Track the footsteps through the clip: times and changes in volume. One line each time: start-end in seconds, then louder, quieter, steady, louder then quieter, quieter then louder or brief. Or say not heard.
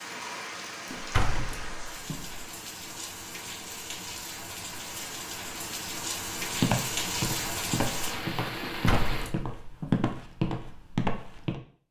6.4-11.6 louder.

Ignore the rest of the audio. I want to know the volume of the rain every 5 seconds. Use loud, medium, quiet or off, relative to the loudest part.
medium, loud, off.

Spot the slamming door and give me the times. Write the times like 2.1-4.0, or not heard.
0.9-2.5, 8.6-10.1.